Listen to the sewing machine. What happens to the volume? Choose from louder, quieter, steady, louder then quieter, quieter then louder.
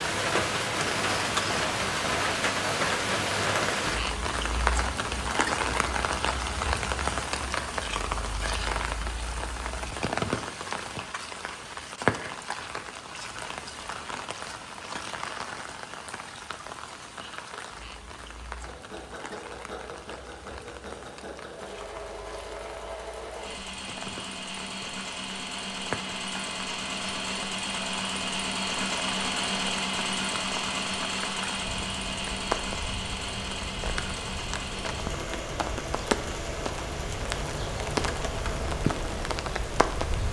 louder then quieter.